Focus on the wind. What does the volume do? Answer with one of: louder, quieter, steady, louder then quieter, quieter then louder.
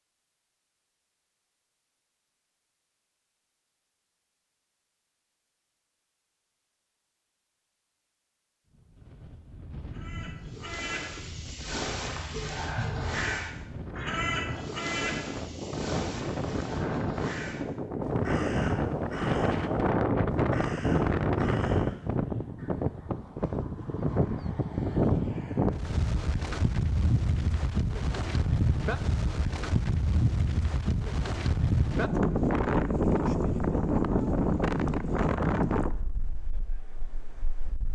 louder.